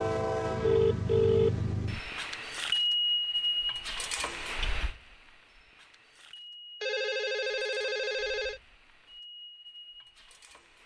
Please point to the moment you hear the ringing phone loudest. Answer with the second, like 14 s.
1 s.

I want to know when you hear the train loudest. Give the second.
3 s.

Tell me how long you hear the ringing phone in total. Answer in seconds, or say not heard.
3 s.